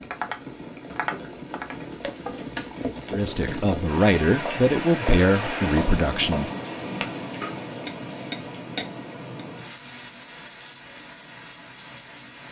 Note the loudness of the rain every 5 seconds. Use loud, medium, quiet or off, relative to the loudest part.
loud, loud, medium.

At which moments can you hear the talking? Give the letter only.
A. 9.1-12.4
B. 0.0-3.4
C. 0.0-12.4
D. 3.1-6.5
D.